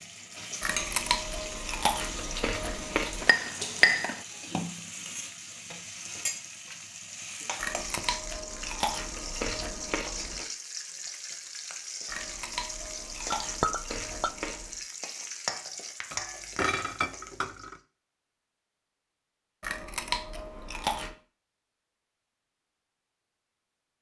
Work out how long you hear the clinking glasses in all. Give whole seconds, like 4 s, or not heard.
4 s.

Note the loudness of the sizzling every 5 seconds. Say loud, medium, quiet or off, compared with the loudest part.
loud, loud, loud, loud, off.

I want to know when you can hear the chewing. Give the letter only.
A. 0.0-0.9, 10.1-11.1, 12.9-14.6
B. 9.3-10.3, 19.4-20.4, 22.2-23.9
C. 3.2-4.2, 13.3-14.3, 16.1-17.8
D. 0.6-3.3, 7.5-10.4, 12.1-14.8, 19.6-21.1
D.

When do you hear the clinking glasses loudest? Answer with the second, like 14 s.
4 s.